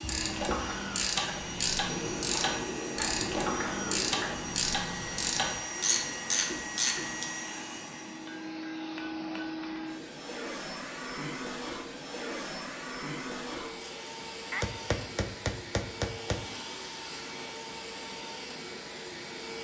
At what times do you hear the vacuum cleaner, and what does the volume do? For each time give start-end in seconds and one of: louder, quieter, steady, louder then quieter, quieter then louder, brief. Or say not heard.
0.0-19.6 steady.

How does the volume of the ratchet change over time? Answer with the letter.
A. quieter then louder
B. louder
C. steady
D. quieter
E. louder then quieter
C.